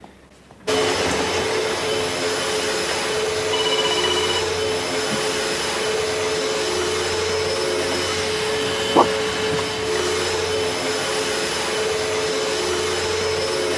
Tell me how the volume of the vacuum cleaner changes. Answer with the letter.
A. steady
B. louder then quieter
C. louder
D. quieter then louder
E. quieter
A.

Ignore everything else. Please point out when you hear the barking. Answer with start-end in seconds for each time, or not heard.
8.9-9.7.